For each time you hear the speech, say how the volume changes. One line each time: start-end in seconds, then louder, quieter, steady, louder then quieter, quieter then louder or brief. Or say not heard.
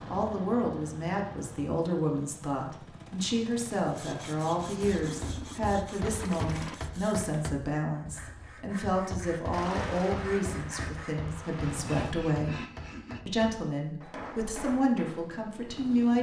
0.1-12.6 steady
13.2-16.1 brief.